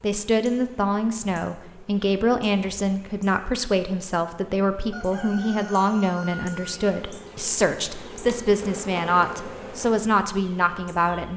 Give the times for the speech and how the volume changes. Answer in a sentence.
You can hear the speech from 0.0 to 11.3 s, at a steady volume.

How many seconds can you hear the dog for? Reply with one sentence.
The dog can't be heard in this clip.